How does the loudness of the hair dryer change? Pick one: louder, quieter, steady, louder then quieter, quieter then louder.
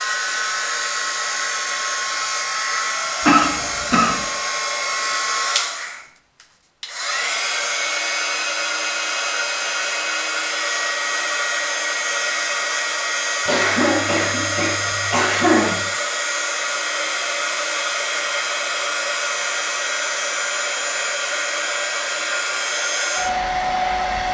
steady.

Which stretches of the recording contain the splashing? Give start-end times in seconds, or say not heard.
not heard.